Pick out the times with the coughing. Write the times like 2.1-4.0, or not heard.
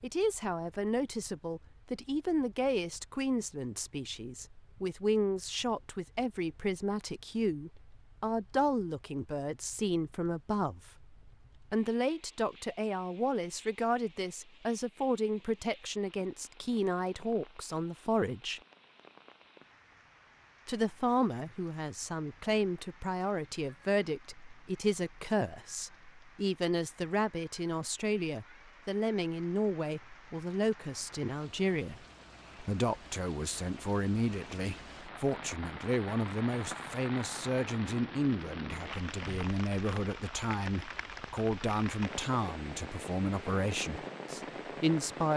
not heard.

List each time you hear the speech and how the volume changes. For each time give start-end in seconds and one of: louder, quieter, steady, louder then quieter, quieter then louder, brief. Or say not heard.
0.0-18.6 steady
20.6-45.3 steady.